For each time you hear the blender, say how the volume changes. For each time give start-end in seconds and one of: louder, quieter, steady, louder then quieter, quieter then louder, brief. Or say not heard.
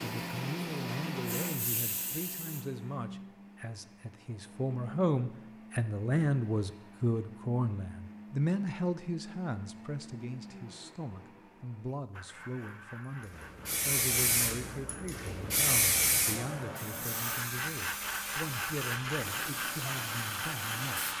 0.0-21.1 quieter then louder.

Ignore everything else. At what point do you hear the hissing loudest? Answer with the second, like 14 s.
16 s.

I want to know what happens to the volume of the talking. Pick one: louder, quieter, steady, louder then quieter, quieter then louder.
louder then quieter.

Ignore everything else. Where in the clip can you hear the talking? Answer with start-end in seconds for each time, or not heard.
0.0-21.1.